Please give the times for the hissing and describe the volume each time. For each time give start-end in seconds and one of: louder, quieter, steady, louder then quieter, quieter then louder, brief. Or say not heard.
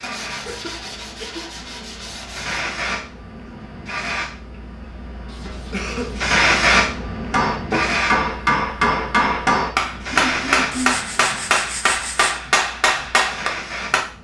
0.0-14.1 louder then quieter.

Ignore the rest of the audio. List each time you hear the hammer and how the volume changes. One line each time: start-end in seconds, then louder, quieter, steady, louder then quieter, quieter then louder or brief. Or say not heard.
7.3-14.0 steady.